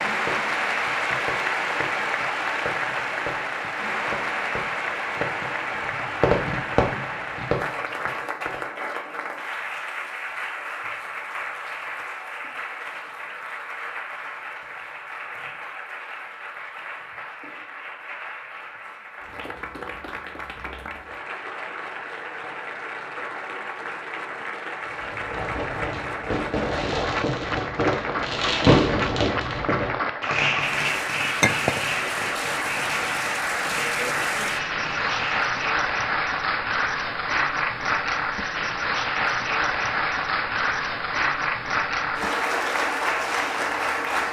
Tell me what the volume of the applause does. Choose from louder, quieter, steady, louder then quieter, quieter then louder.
quieter then louder.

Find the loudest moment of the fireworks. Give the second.
29 s.